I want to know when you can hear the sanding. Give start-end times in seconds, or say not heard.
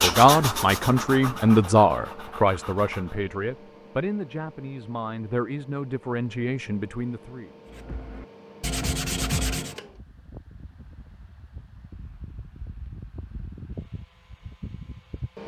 0.0-3.2, 7.7-9.8.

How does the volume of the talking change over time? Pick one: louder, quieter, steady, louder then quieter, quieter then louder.
quieter.